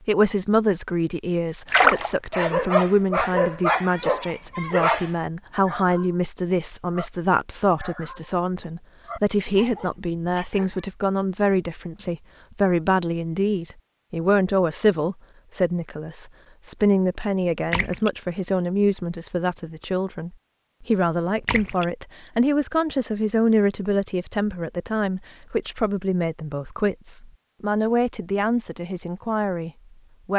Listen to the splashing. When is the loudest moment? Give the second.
2 s.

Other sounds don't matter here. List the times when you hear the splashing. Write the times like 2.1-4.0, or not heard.
1.6-2.1, 17.7-18.1, 21.4-21.9.